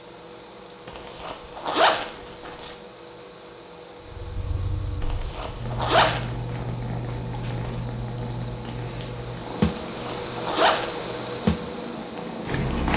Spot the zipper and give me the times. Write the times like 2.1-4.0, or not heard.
0.8-2.8, 5.0-6.3, 9.7-11.1.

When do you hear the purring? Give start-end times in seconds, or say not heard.
5.5-12.9.